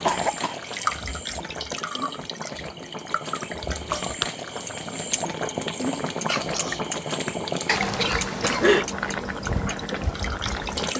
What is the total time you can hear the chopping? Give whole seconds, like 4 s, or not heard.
not heard.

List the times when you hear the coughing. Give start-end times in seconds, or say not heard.
0.1-0.8, 7.7-8.8.